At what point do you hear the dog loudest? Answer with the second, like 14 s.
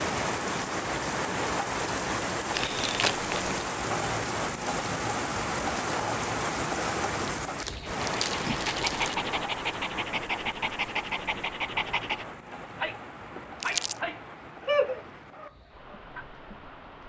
15 s.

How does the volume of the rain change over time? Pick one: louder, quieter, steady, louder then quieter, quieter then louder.
quieter.